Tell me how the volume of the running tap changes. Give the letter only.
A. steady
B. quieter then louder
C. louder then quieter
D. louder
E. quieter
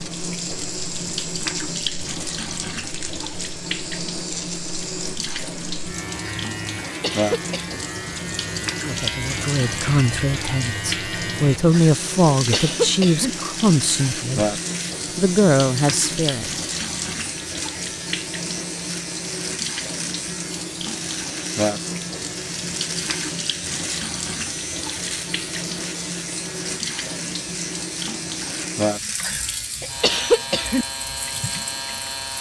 A.